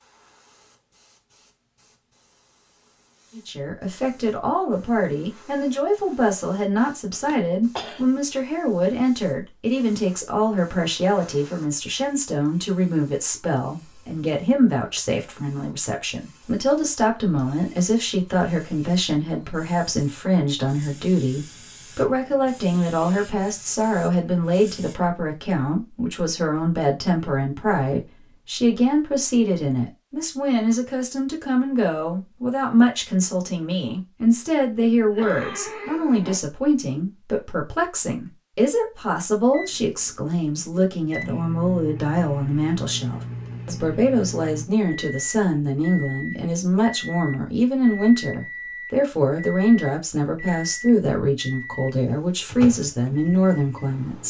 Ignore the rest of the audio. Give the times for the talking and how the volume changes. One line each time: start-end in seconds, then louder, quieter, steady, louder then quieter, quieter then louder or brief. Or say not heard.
3.4-54.2 steady.